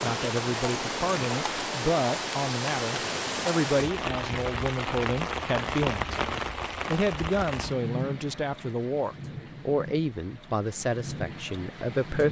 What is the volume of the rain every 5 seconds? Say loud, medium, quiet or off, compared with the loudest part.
loud, loud, medium.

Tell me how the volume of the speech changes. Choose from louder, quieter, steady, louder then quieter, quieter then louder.
steady.